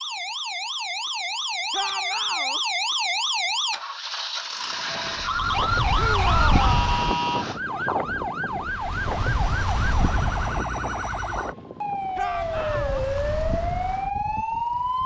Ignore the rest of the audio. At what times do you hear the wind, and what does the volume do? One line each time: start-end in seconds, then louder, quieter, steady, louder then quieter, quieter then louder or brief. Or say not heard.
4.7-15.0 quieter.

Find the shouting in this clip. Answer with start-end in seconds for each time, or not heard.
1.7-2.6, 6.0-6.8, 12.2-13.1.